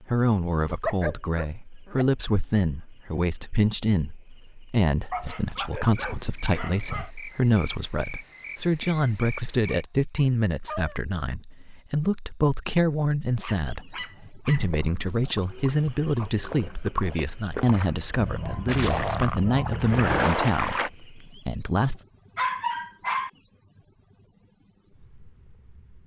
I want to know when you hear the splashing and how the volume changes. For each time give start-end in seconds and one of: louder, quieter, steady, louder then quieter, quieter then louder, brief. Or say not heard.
14.6-20.9 louder.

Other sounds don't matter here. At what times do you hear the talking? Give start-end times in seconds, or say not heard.
0.0-22.0.